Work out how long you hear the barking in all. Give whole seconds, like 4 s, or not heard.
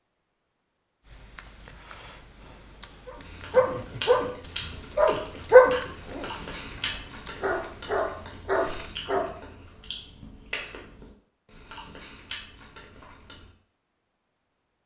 6 s.